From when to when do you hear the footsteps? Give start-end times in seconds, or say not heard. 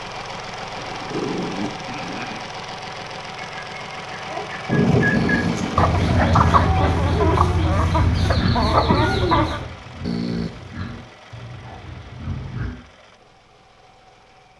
not heard.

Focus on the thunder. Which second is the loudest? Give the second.
5 s.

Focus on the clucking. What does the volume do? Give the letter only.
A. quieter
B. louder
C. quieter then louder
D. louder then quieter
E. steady
B.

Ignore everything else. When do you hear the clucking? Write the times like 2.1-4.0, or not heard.
3.4-9.7.